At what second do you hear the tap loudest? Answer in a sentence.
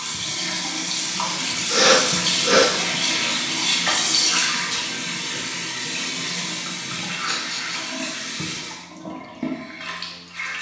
The loudest moment of the tap is at 4 seconds.